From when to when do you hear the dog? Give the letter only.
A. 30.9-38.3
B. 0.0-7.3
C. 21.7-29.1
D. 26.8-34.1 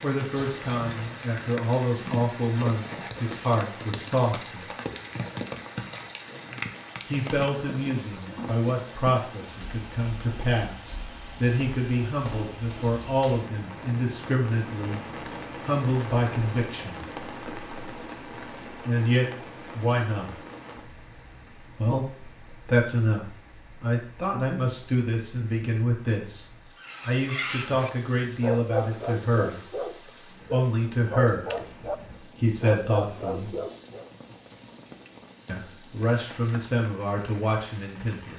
D.